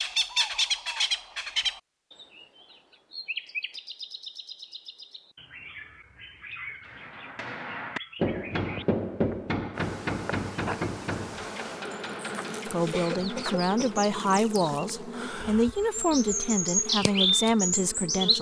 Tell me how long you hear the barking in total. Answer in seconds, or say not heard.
not heard.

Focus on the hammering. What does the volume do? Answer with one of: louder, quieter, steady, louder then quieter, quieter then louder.
quieter.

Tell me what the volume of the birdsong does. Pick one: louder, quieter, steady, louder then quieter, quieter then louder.
quieter then louder.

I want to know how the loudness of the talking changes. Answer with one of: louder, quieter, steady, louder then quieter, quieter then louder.
steady.